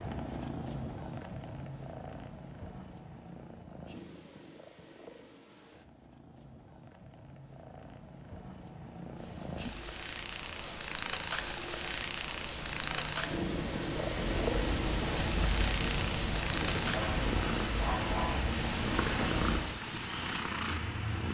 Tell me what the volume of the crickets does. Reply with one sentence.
The loudness of the crickets goes up.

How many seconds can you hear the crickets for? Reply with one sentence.
The crickets can be heard for 12 seconds in total.